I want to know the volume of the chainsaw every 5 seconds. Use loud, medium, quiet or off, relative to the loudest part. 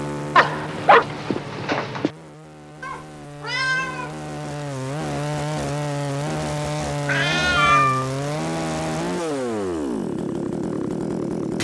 medium, loud, loud.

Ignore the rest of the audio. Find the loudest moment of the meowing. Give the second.
8 s.